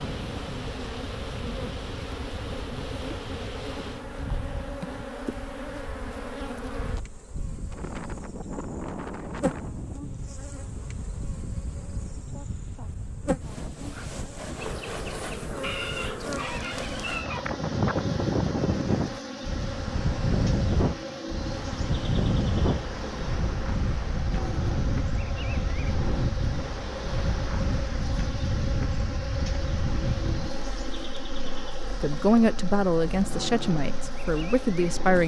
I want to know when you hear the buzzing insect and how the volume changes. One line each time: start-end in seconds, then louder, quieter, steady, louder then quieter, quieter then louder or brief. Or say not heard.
0.0-35.2 steady.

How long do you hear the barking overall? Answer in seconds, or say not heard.
2 s.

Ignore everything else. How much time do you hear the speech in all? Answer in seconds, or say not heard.
3 s.